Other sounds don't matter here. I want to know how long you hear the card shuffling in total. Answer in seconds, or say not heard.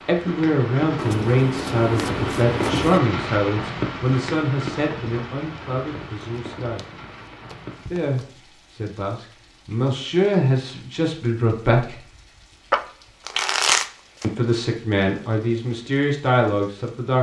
6 s.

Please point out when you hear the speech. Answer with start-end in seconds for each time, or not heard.
0.1-6.8, 7.8-11.9, 14.2-17.1.